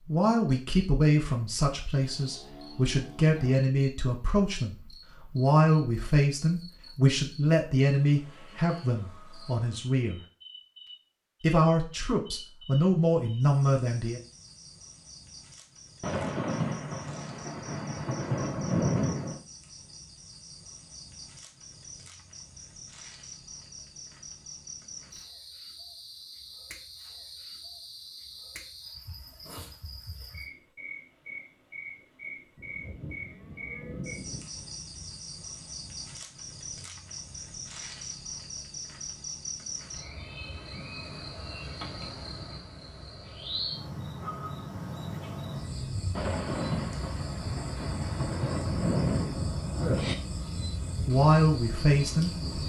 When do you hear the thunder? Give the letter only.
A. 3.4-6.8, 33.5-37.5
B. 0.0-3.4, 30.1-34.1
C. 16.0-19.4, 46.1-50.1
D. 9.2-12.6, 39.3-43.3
C.